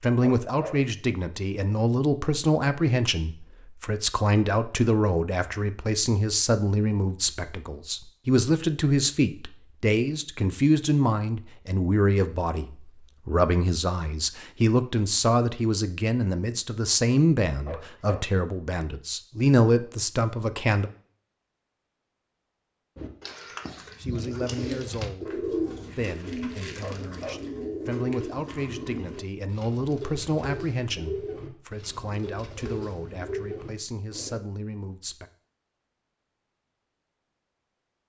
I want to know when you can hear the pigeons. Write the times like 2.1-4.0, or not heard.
22.9-34.4.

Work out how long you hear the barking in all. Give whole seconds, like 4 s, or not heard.
2 s.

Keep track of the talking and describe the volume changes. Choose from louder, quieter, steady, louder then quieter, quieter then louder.
quieter.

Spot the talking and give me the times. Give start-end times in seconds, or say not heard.
0.0-20.9, 23.8-35.3.